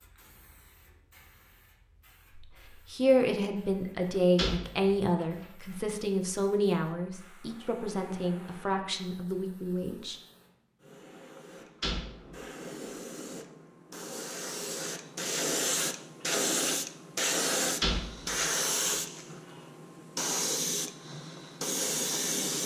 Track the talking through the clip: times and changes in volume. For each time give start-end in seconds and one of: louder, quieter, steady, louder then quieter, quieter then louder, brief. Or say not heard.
2.4-10.2 quieter.